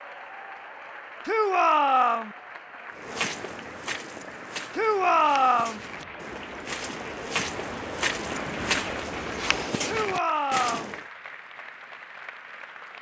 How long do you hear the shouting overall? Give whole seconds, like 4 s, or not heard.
3 s.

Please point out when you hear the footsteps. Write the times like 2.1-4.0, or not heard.
3.0-11.1.